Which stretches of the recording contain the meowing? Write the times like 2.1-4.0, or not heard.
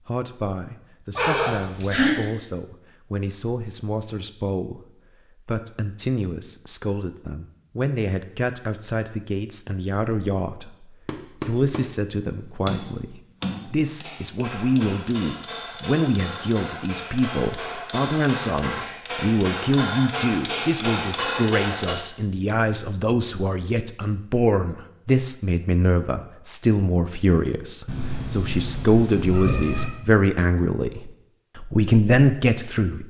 1.1-2.1, 27.9-29.9.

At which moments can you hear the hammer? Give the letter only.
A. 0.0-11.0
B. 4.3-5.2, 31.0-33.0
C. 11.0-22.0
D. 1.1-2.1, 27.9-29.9
C.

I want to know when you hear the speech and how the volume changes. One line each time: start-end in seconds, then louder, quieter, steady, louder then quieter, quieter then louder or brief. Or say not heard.
0.1-33.0 louder.